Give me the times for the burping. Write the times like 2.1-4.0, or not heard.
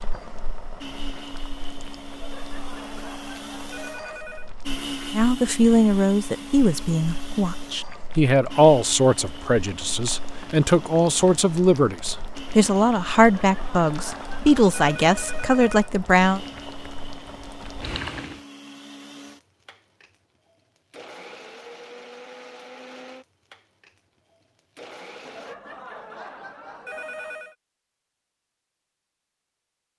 not heard.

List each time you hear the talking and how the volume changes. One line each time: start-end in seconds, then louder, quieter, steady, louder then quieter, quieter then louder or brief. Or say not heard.
5.1-16.4 steady.